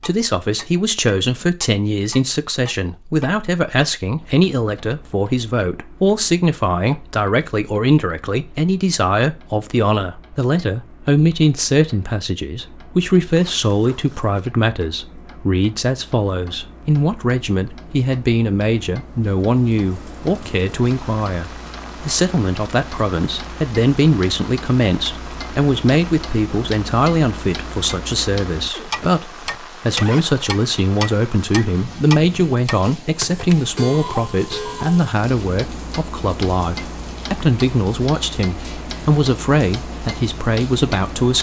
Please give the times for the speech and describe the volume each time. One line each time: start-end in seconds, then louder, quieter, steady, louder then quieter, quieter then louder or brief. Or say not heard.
0.0-41.3 steady.